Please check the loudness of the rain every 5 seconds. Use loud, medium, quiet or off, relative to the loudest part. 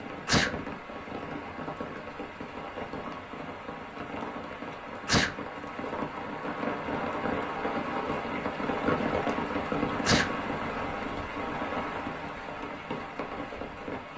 medium, loud, loud.